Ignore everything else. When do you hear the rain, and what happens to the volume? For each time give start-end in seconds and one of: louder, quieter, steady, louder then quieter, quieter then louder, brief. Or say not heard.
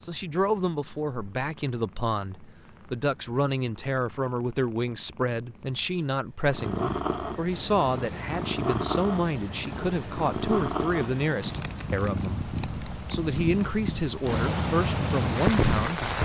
7.5-16.1 louder.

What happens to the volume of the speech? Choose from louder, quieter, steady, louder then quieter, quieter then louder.
steady.